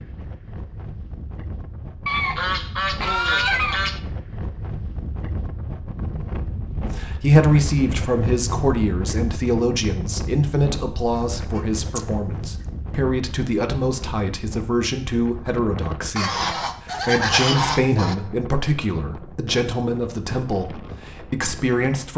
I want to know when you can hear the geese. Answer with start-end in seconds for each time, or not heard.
2.0-4.0, 11.3-12.1, 16.1-18.1.